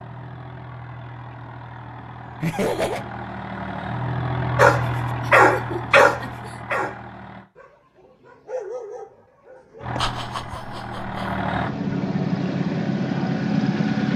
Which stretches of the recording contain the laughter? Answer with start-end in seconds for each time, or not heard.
2.4-3.0, 5.2-6.5, 9.9-11.3.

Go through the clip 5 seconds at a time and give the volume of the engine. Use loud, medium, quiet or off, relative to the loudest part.
medium, medium, loud.